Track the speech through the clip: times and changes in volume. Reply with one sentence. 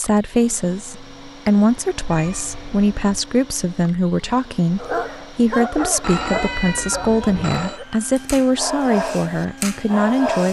The speech can be heard from 0.0 to 10.4 s, at a steady volume.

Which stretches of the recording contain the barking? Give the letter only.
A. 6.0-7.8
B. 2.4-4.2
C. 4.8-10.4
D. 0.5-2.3
C.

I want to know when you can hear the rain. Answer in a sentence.
You can't hear the rain here.